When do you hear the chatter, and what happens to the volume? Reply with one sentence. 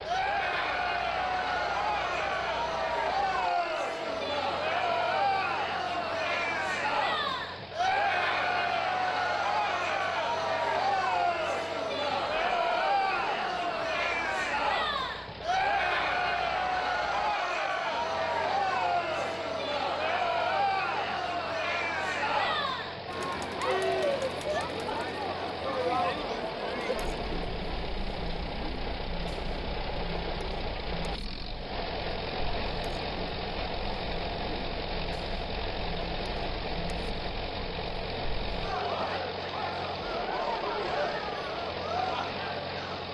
You can hear the chatter from 0.0 to 43.0 s, getting quieter.